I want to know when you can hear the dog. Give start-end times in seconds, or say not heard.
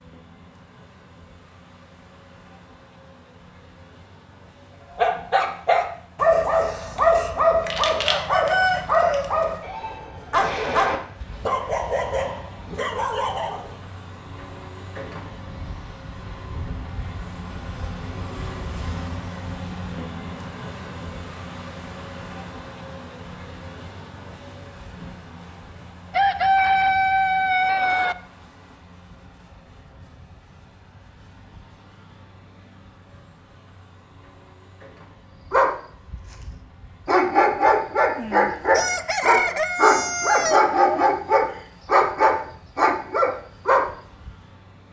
5.0-13.8, 35.5-44.3.